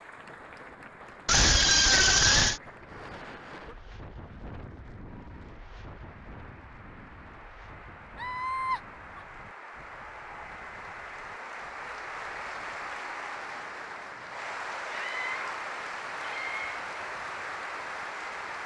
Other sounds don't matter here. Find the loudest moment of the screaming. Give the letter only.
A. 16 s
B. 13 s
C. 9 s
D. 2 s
D.